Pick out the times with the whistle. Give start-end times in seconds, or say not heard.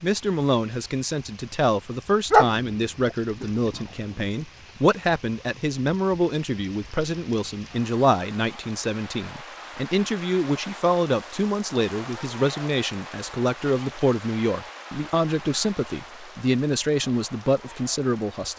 not heard.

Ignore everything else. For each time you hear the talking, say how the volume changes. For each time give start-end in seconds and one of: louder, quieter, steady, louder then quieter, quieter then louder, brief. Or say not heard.
0.0-18.5 steady.